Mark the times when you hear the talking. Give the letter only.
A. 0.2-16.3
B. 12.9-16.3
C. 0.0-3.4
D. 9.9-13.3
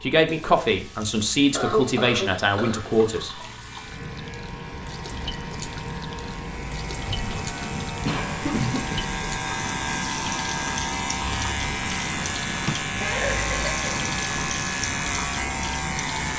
C.